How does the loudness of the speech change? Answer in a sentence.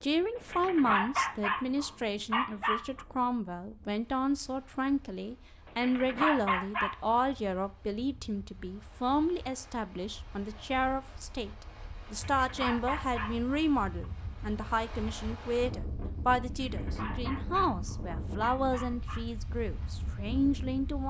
The loudness of the speech stays about the same.